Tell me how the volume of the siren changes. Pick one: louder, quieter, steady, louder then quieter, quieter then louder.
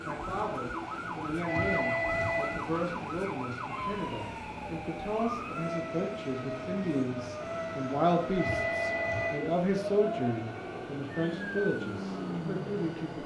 steady.